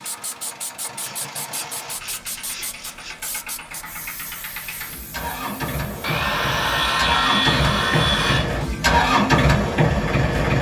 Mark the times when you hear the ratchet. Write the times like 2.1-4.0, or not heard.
not heard.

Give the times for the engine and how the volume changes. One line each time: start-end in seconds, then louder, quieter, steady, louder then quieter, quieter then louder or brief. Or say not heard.
0.0-10.5 louder.